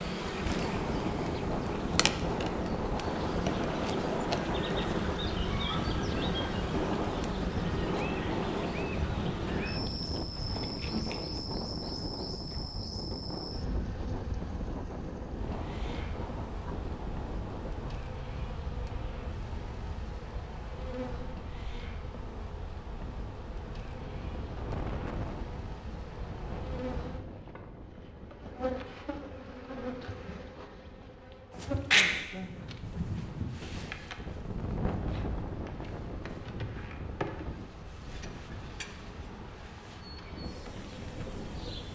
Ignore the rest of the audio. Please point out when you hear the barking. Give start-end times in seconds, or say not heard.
31.6-33.5.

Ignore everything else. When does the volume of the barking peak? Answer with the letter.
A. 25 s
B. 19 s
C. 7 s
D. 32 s
D.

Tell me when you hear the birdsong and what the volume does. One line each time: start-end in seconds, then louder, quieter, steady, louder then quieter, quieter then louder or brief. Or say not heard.
not heard.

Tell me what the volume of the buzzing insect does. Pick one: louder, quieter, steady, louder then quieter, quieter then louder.
quieter.